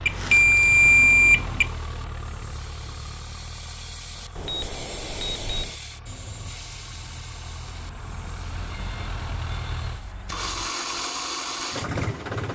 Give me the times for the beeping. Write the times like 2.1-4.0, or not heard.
0.1-1.7, 4.3-5.8, 8.6-10.8.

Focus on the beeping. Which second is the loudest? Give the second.
1 s.